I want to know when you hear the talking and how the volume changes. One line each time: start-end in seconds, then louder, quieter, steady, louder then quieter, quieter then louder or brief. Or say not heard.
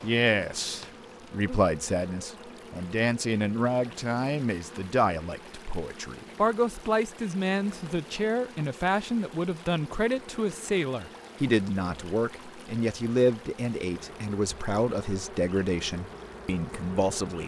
0.0-17.4 steady.